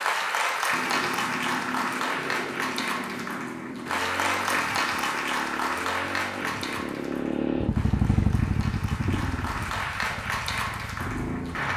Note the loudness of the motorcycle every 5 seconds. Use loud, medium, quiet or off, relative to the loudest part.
medium, loud, medium.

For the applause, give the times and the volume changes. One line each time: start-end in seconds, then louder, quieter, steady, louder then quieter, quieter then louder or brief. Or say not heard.
0.0-11.7 quieter then louder.